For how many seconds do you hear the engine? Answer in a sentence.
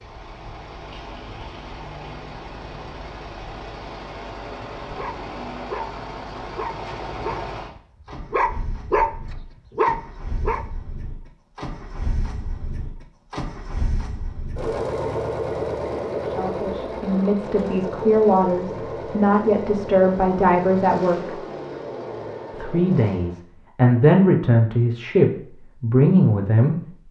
You can hear the engine for 23 seconds altogether.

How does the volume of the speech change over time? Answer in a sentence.
The loudness of the speech goes up.